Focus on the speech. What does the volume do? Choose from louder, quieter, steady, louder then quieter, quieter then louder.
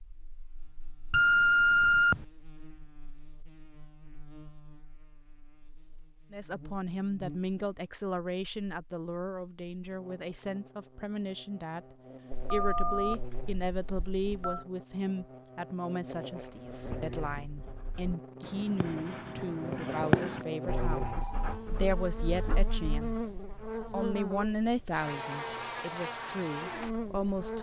steady.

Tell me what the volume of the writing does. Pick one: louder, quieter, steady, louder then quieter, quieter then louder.
louder then quieter.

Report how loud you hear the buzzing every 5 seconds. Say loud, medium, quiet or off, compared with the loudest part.
quiet, quiet, quiet, medium, loud, loud.